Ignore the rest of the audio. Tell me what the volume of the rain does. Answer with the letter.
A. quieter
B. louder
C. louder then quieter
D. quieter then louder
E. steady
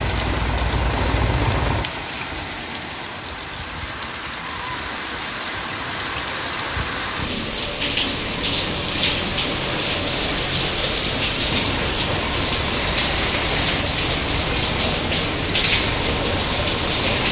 B.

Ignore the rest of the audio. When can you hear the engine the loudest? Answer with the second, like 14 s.
1 s.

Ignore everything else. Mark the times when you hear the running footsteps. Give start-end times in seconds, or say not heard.
not heard.